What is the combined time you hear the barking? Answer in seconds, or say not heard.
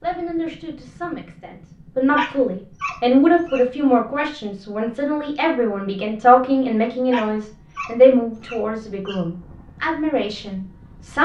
4 s.